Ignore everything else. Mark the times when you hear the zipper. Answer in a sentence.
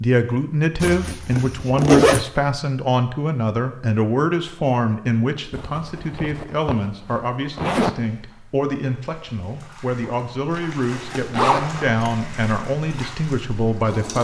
You can hear the zipper from 0.8 to 2.2 s, from 5.5 to 7.9 s and from 10.6 to 12.2 s.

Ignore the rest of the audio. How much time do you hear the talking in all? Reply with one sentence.
You can hear the talking for 14 seconds altogether.